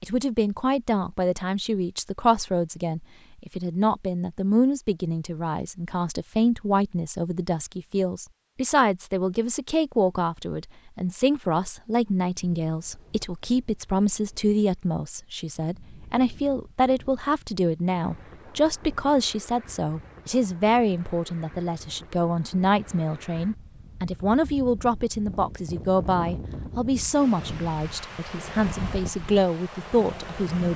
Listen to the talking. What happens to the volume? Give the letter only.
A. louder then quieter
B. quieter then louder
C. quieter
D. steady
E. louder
D.